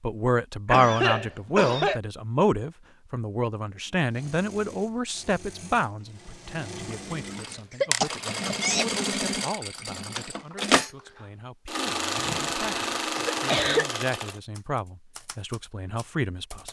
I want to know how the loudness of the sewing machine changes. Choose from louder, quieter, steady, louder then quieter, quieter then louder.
louder.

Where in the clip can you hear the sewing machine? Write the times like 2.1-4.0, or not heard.
3.9-14.4.